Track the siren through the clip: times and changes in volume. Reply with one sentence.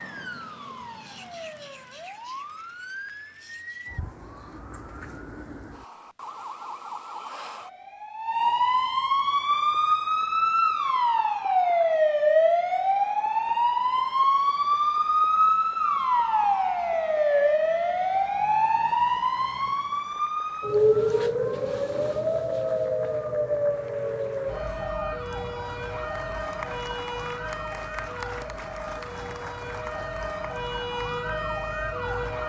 The siren can be heard from 0.0 to 32.4 s, getting louder then quieter.